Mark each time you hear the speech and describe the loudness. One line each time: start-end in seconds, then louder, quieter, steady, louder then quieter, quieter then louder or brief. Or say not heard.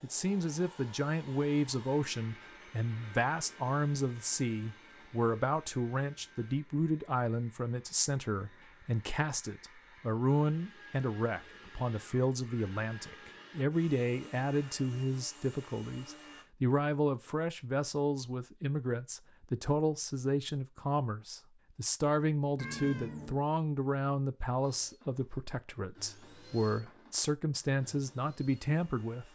0.0-29.3 steady.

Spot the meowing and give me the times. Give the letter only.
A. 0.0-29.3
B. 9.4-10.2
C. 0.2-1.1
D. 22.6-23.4
D.